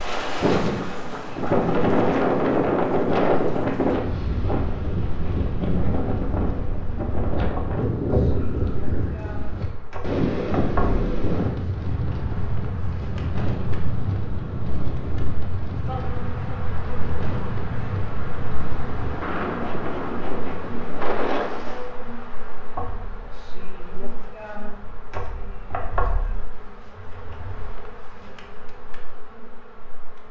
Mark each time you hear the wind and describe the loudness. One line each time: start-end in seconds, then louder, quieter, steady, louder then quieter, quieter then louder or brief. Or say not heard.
0.0-21.9 quieter.